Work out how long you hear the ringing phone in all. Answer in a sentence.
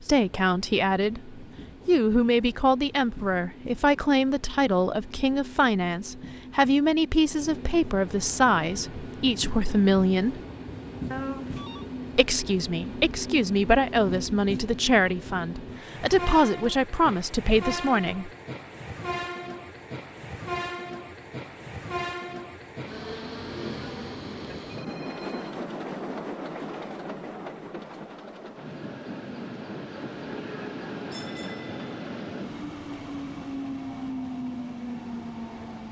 The ringing phone can be heard for 2 seconds in total.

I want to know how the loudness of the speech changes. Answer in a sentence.
The volume of the speech stays about the same.